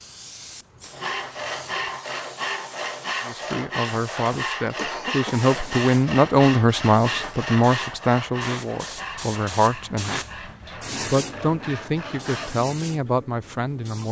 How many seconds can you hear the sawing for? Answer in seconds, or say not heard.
12 s.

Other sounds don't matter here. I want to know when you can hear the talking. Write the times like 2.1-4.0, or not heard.
3.2-14.0.